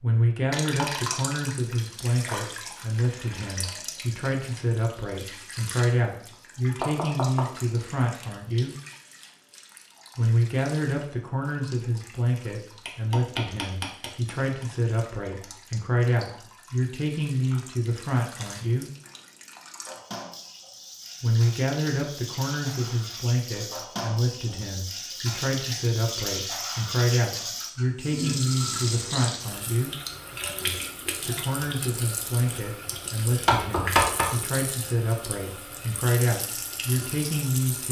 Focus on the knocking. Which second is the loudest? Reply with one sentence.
The loudest moment of the knocking is at 34 seconds.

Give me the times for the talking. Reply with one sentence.
The talking can be heard from 0.0 to 8.8 s, from 10.2 to 18.9 s, from 21.2 to 29.9 s and from 31.2 to 37.8 s.